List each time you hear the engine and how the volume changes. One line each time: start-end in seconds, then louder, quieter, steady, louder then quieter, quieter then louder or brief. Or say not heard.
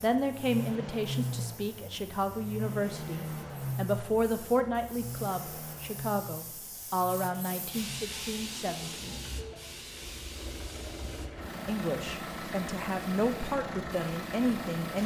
0.0-15.0 quieter then louder.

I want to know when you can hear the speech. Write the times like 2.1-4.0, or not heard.
0.0-9.2, 11.7-15.0.